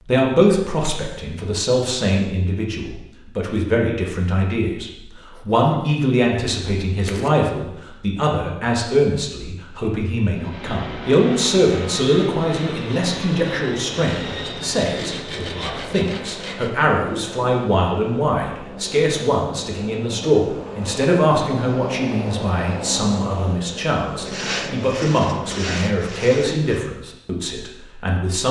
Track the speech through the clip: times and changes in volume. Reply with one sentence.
You can hear the speech from 0.0 to 28.4 s, at a steady volume.